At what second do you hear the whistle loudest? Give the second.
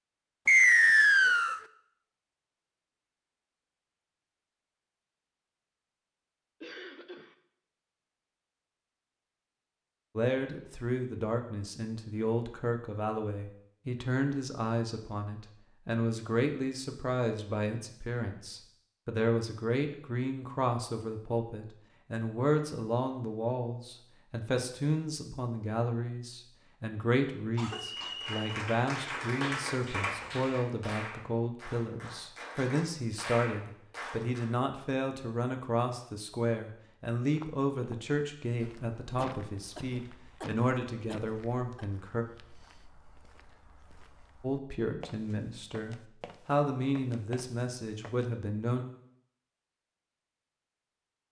1 s.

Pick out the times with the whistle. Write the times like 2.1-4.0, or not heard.
0.5-1.6, 27.6-28.6.